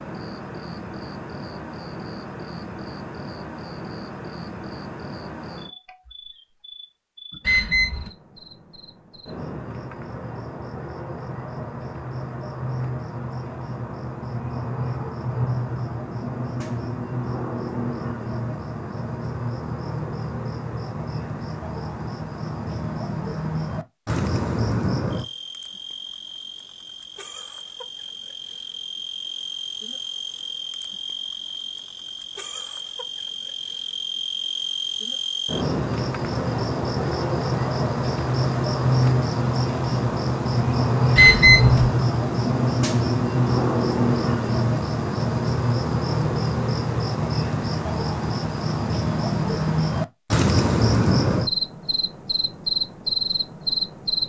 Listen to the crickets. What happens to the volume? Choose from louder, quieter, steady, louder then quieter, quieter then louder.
louder.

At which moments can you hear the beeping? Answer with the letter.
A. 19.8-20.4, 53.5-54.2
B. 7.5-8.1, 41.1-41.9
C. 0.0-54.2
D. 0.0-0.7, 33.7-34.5
B.